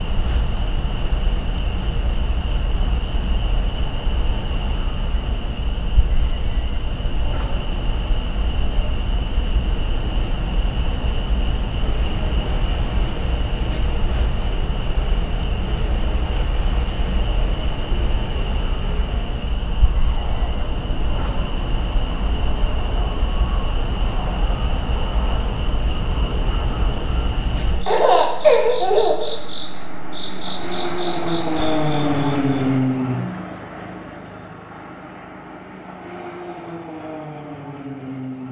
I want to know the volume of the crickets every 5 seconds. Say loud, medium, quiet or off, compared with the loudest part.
loud, loud, loud, loud, loud, loud, loud, off.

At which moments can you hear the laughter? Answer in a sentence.
You can hear the laughter from 27.9 to 29.3 s.